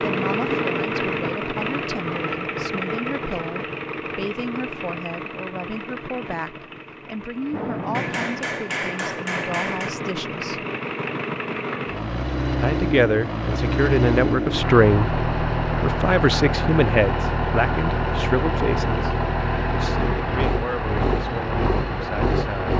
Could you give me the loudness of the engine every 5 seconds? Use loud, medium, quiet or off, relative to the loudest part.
loud, medium, loud, loud, loud.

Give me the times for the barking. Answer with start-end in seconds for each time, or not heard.
not heard.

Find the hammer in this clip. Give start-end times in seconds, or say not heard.
7.9-9.9.